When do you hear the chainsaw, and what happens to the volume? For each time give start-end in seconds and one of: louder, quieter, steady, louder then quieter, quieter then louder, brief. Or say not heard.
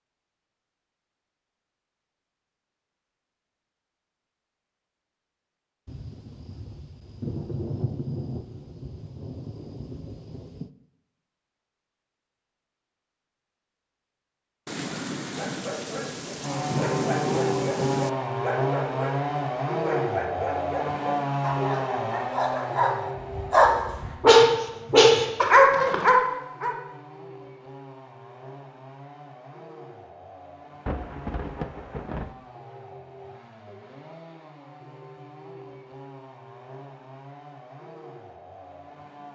16.4-39.3 quieter.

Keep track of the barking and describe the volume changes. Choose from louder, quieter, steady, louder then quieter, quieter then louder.
louder.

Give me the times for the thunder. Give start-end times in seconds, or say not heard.
5.8-10.7, 14.7-18.1, 30.9-32.4.